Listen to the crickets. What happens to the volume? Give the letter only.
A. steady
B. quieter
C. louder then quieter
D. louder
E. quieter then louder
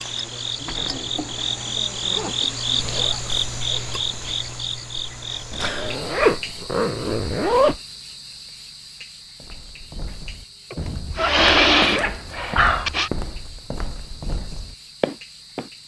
B.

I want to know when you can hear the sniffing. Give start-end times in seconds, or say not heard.
2.8-4.4, 10.7-13.1.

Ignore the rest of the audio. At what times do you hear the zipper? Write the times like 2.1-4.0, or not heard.
0.7-3.2, 5.5-7.8, 11.2-12.9.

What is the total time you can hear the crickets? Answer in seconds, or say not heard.
16 s.